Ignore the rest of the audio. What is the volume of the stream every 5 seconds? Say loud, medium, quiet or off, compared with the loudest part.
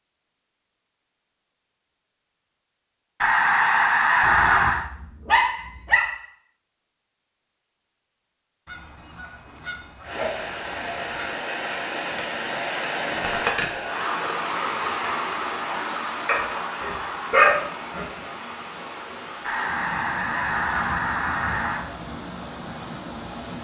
off, off, loud, loud, medium.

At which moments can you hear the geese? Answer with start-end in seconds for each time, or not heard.
3.2-4.8, 8.7-11.3, 19.4-21.9.